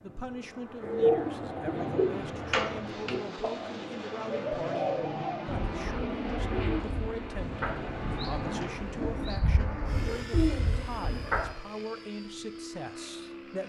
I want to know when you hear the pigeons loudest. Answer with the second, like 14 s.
1 s.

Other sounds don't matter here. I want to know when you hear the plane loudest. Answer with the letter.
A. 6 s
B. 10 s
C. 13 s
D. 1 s
A.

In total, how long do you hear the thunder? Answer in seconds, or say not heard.
2 s.